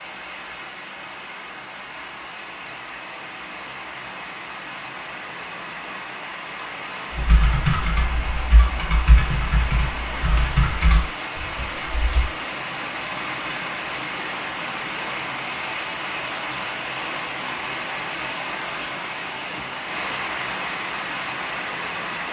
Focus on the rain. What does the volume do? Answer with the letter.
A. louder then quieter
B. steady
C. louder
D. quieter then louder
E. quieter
C.